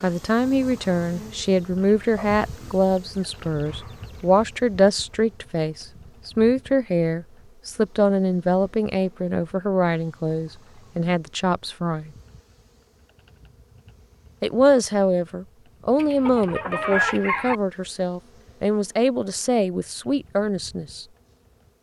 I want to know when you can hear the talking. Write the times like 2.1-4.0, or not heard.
0.0-12.1, 14.4-21.1.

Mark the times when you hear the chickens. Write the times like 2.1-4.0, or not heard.
1.8-4.4, 15.9-17.6.